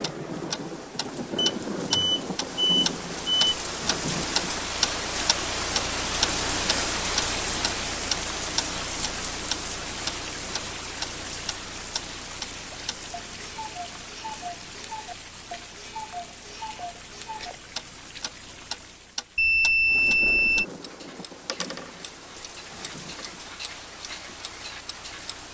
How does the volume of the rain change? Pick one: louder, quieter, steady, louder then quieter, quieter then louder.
quieter.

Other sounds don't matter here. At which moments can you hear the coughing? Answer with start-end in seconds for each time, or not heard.
not heard.